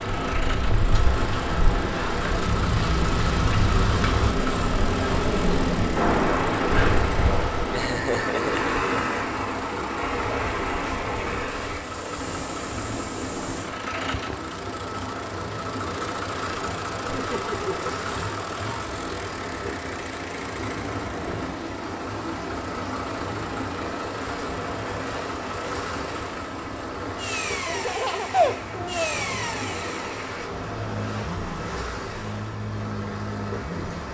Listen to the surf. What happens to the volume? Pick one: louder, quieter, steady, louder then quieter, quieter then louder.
quieter.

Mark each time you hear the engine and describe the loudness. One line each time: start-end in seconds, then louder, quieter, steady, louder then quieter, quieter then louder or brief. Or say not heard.
0.0-34.0 steady.